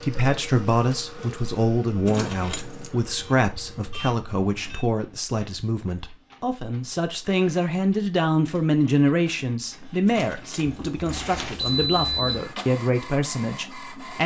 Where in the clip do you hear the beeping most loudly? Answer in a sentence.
The loudest moment of the beeping is at 12 seconds.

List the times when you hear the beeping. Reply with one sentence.
You can hear the beeping from 3.1 to 4.8 s and from 10.7 to 12.4 s.